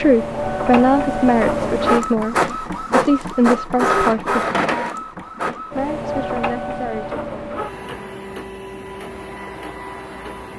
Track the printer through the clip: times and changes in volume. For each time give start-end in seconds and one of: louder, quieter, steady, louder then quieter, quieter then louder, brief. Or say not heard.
0.0-10.5 quieter.